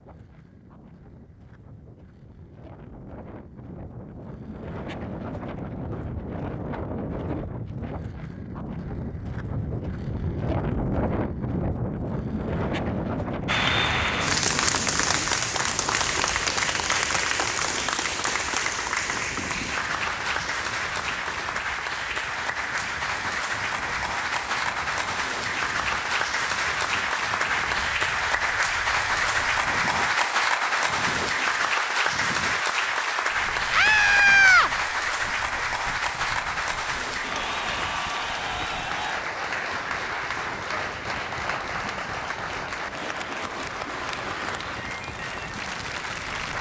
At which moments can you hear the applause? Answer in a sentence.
The applause can be heard from 13.4 to 46.5 s.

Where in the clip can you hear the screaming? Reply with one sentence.
The screaming can be heard from 33.7 to 34.7 s.